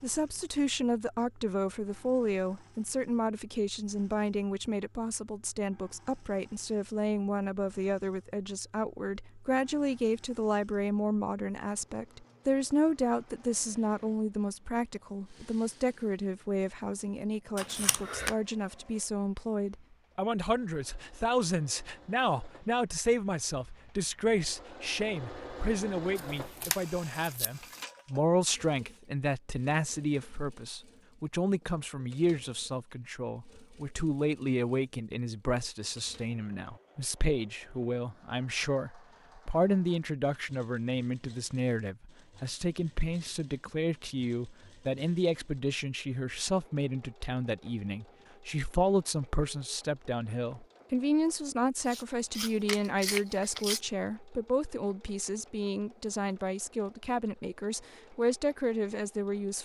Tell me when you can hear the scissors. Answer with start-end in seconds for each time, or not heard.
17.6-18.4, 26.1-27.8, 51.9-53.8.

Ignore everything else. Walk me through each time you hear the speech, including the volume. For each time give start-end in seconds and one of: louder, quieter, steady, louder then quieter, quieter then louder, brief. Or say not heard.
0.0-59.6 steady.